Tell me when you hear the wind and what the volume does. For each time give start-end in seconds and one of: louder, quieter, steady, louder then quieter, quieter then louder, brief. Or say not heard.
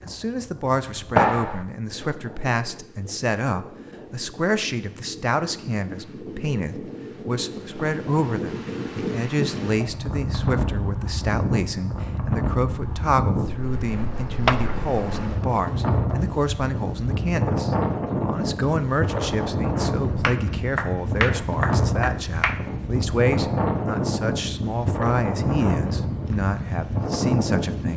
0.0-27.9 louder.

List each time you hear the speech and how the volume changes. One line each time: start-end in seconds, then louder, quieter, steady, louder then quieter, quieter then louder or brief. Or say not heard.
0.1-27.9 steady.